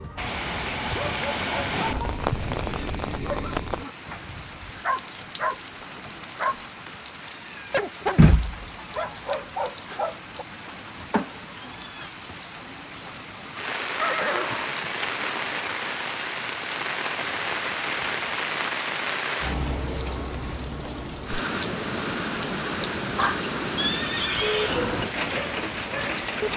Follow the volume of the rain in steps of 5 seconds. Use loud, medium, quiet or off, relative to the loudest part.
loud, loud, medium, loud, loud, loud.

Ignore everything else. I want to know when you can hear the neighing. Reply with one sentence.
The neighing can be heard from 2.4 to 3.0 s, from 13.9 to 14.7 s and from 23.8 to 24.9 s.